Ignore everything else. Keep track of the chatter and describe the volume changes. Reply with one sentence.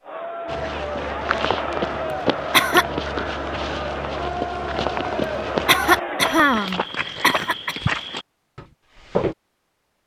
The volume of the chatter stays about the same.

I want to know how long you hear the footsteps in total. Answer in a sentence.
The footsteps can be heard for 9 seconds in total.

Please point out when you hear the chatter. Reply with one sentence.
The chatter can be heard from 0.0 to 6.5 s.